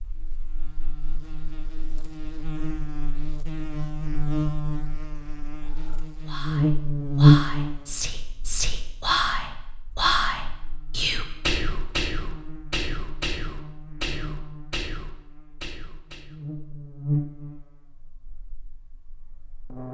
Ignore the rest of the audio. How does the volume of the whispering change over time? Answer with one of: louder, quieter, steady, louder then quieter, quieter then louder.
louder then quieter.